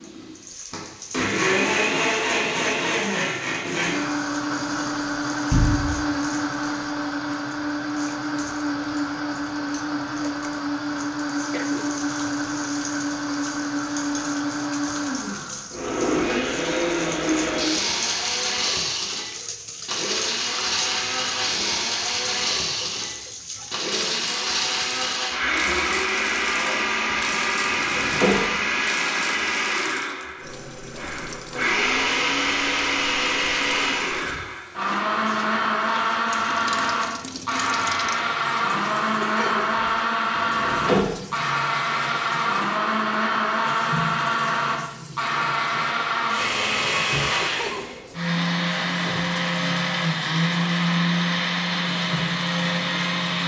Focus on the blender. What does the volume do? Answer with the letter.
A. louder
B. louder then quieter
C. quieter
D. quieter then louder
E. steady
E.